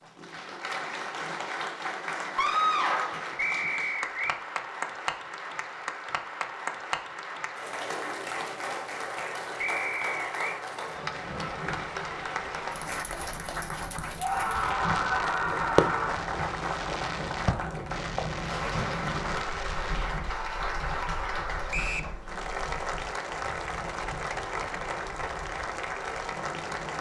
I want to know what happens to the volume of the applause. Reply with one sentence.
The volume of the applause stays about the same.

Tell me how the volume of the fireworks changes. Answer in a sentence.
The volume of the fireworks goes down.